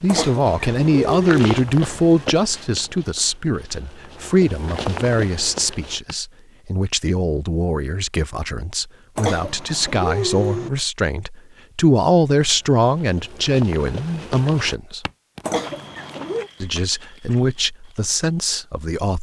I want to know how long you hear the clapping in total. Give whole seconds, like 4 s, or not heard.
not heard.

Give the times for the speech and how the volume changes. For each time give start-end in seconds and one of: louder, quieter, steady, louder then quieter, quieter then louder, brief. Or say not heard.
0.0-15.0 quieter then louder
16.6-19.1 brief.